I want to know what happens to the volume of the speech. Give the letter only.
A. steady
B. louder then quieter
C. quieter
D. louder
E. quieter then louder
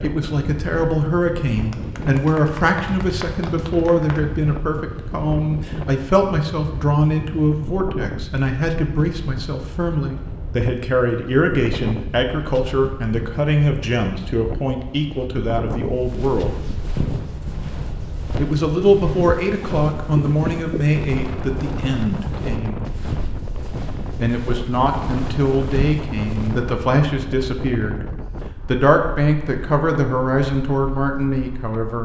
A.